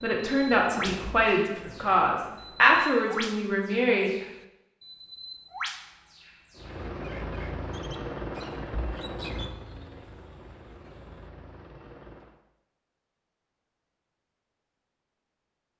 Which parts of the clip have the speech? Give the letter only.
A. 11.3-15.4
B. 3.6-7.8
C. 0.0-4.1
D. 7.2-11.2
C.